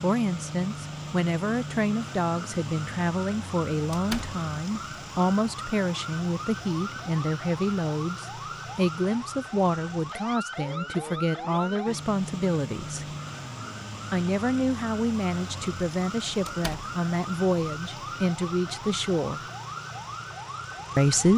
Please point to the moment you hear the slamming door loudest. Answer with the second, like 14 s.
4 s.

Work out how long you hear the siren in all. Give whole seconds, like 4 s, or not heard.
21 s.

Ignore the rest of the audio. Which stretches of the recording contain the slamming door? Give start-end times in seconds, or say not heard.
3.9-4.3, 16.4-16.9.